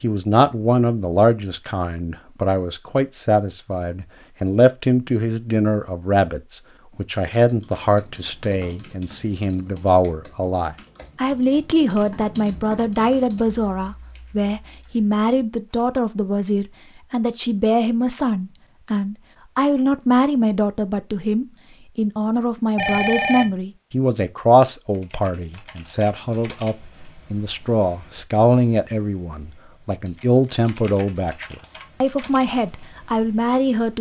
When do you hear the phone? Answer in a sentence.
You can hear the phone from 22.8 to 23.6 s.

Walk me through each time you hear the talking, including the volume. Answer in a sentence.
The talking can be heard from 0.0 to 33.9 s, at a steady volume.